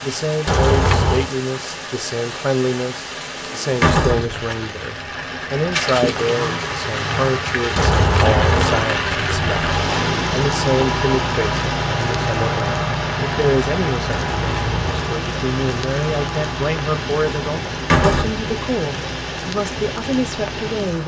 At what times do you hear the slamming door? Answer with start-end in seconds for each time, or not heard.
3.7-4.5, 17.8-18.5.